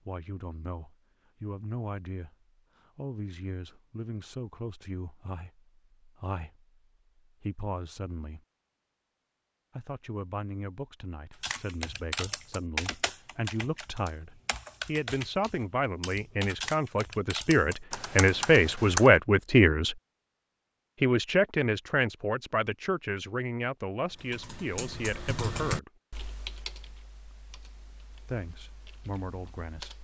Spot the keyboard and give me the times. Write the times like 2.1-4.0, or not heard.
11.4-19.1, 24.1-29.9.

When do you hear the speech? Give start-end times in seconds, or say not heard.
0.1-2.4, 3.0-6.7, 7.4-8.4, 9.8-19.9, 21.0-25.9, 28.1-29.9.